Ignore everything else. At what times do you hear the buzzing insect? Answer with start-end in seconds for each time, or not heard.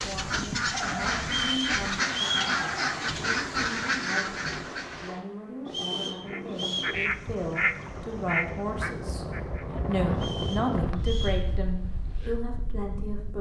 not heard.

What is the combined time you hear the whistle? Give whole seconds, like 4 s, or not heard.
4 s.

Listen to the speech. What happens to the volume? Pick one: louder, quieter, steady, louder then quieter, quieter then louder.
louder.